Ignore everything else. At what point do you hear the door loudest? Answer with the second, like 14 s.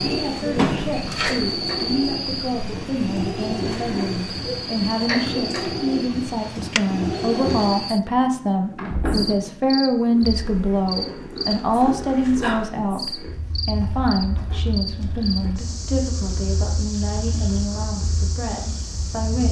1 s.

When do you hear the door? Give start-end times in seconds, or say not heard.
0.6-1.4, 8.8-9.5, 13.8-15.6.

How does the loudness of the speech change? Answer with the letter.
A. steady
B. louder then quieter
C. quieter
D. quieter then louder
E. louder
B.